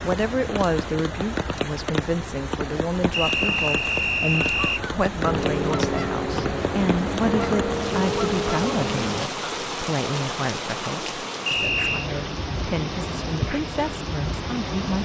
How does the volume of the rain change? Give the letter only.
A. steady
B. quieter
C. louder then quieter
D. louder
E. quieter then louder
A.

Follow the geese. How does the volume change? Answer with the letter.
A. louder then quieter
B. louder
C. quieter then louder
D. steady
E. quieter
D.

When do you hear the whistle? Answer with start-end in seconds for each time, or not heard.
3.1-4.8, 11.4-12.1.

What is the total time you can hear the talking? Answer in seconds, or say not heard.
15 s.